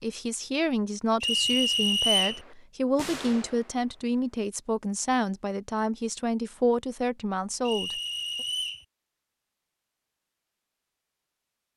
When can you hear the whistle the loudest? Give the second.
2 s.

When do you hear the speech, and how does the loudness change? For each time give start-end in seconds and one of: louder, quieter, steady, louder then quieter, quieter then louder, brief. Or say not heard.
0.0-8.0 steady.